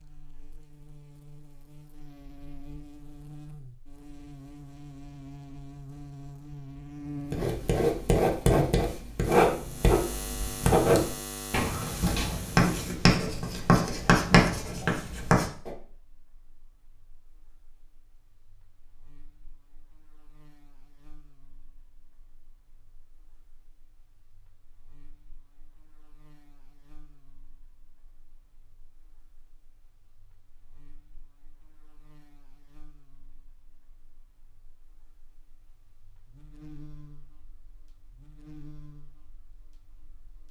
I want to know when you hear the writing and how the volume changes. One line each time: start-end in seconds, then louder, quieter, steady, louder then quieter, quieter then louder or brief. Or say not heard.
7.3-15.7 steady.